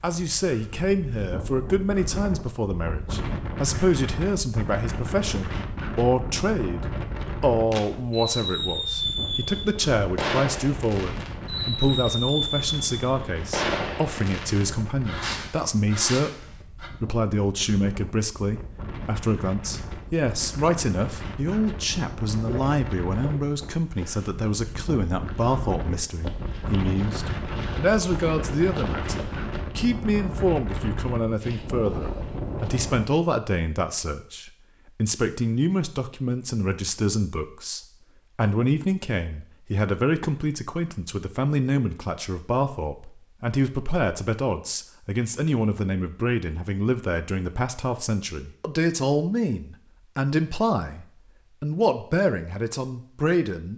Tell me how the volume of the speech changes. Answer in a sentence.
The volume of the speech stays about the same.